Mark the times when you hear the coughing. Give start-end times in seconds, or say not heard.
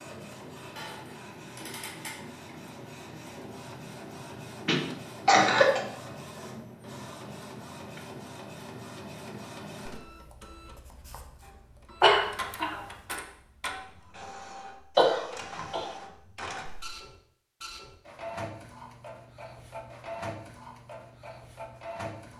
4.7-5.8, 12.0-12.8, 14.9-15.9.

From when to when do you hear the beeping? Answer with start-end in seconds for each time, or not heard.
not heard.